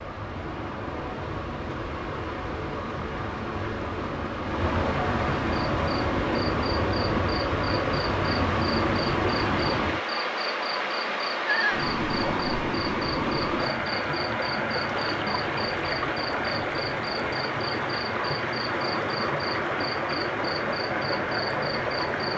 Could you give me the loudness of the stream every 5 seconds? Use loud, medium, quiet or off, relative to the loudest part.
medium, loud, loud, loud, loud.